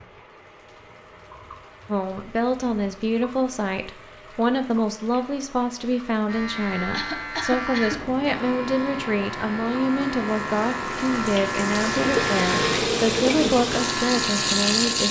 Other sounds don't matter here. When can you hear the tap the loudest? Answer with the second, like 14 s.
15 s.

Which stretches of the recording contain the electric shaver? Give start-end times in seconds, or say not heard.
6.2-15.0.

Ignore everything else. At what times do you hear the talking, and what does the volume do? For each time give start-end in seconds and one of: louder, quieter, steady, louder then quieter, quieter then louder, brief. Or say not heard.
1.9-15.0 steady.